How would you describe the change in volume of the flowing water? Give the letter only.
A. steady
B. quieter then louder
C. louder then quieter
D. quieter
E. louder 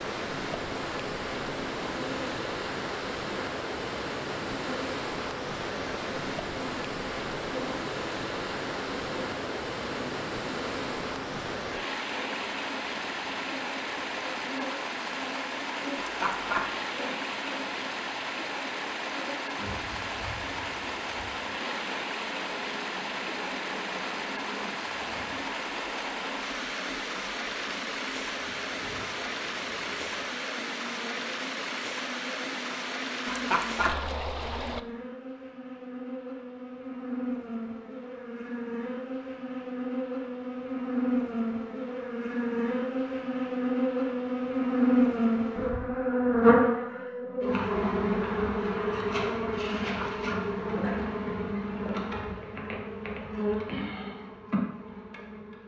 A.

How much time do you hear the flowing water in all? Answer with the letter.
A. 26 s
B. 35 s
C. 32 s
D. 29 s
B.